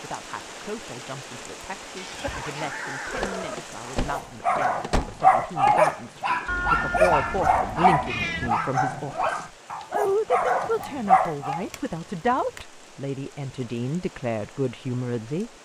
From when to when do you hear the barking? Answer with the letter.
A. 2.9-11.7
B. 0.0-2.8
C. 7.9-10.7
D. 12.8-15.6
A.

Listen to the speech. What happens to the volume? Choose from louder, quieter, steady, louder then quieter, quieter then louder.
louder.